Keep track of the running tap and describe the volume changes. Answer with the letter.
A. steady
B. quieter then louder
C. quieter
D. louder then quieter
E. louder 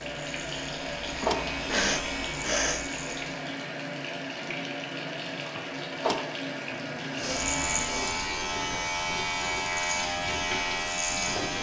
A.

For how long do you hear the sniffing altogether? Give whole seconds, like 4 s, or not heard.
3 s.